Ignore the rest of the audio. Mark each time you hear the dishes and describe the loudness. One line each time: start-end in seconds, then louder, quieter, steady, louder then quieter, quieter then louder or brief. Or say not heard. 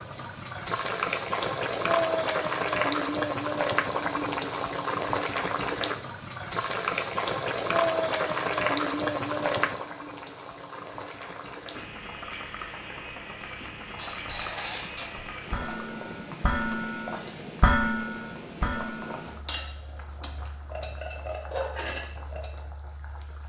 13.9-22.5 louder then quieter.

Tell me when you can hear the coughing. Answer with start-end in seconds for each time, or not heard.
not heard.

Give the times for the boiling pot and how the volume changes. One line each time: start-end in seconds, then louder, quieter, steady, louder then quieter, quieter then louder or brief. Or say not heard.
0.0-23.4 quieter.